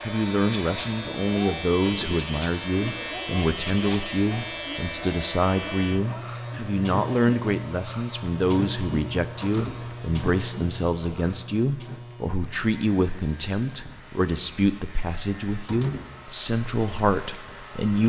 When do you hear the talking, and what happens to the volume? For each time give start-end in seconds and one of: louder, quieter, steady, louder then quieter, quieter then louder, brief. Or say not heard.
0.0-18.0 steady.